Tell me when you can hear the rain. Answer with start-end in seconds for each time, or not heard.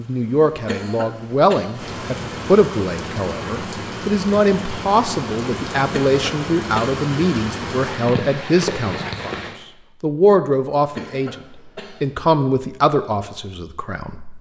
0.0-9.6.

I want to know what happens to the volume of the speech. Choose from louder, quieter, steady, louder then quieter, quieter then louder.
steady.